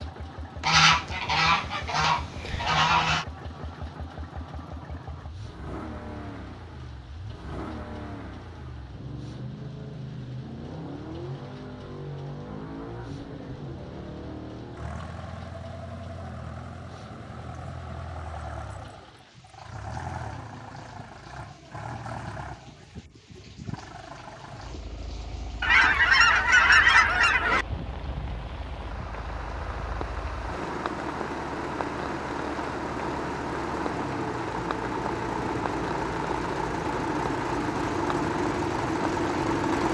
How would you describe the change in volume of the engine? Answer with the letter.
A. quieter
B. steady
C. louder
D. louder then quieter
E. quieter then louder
C.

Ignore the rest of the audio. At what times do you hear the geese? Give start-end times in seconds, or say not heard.
0.6-3.2, 25.6-27.6.